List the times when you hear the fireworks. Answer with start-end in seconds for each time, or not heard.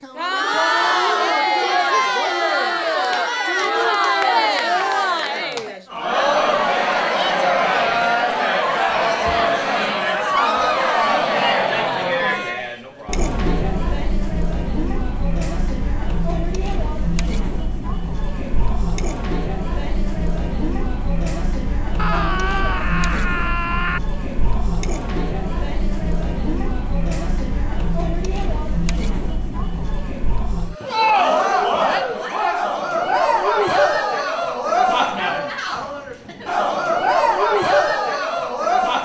not heard.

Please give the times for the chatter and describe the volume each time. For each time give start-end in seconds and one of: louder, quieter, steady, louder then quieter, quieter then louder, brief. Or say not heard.
0.0-39.0 quieter then louder.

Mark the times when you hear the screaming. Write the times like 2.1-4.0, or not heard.
10.3-11.0, 21.9-24.0.